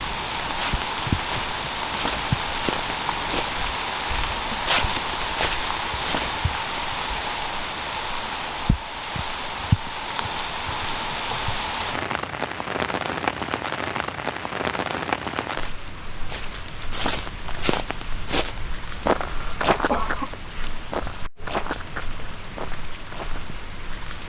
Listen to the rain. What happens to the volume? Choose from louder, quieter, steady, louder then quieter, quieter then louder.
quieter.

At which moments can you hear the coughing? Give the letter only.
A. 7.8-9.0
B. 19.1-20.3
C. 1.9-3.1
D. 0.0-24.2
B.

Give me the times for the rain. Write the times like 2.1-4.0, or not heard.
0.0-24.2.